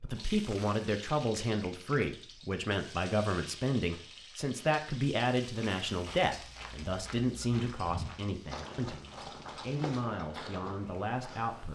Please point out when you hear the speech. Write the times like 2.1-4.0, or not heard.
0.0-11.7.